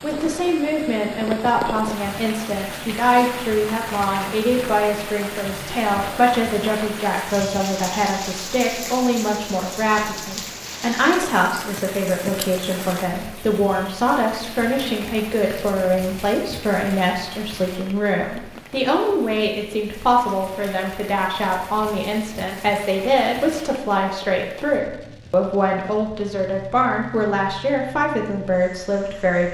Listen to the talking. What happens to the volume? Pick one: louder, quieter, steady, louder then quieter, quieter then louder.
steady.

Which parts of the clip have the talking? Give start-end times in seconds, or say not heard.
0.0-29.4.